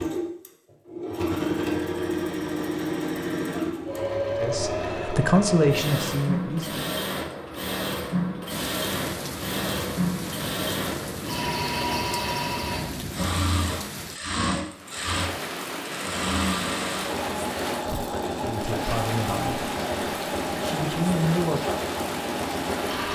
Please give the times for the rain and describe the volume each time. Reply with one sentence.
The rain can be heard from 8.5 to 23.1 s, at a steady volume.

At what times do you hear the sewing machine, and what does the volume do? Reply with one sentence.
The sewing machine can be heard from 0.0 to 23.1 s, at a steady volume.